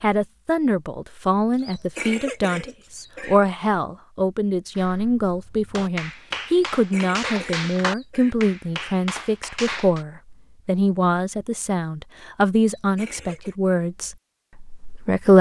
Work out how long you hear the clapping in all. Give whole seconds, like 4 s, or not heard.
5 s.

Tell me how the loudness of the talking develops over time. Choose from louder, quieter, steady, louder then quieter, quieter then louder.
steady.